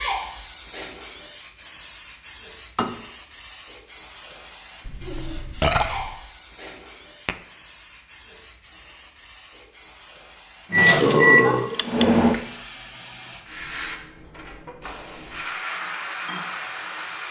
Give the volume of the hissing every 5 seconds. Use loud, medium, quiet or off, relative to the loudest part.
loud, medium, medium, loud.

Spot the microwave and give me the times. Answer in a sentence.
The microwave can be heard from 10.7 to 12.4 s.